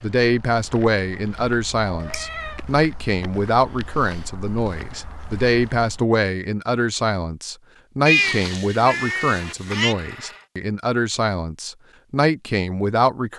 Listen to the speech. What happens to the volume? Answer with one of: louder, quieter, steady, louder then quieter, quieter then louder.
steady.